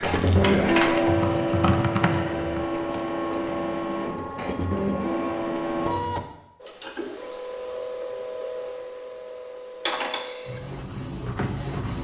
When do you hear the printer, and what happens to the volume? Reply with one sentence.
The printer can be heard from 0.0 to 11.9 s, getting quieter.